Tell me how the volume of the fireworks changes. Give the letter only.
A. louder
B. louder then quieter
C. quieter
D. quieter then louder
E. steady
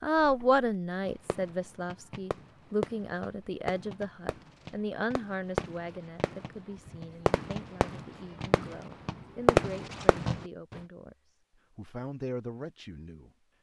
A.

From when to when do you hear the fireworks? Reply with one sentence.
The fireworks can be heard from 0.1 to 10.4 s.